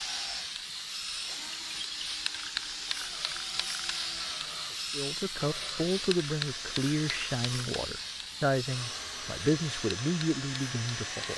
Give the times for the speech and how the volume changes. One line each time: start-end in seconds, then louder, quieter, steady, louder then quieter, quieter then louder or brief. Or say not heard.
4.9-11.3 steady.